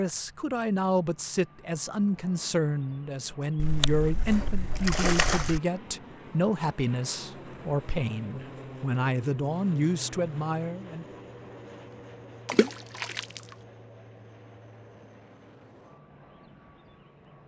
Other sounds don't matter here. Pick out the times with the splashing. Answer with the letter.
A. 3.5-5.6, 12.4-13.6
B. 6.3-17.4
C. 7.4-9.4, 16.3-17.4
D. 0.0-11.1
A.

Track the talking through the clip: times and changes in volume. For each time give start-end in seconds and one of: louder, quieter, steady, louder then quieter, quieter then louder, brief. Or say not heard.
0.0-11.1 steady.